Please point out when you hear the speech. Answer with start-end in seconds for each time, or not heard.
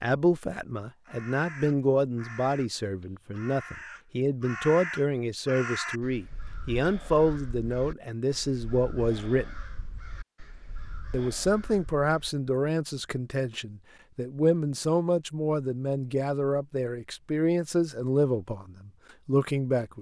0.0-9.5, 11.1-19.9.